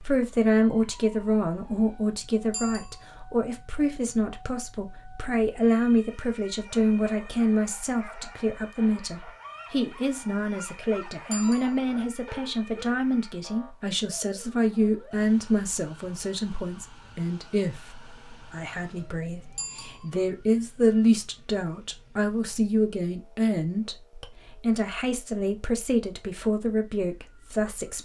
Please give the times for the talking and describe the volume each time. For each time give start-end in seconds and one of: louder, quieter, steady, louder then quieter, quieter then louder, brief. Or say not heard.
0.0-28.0 steady.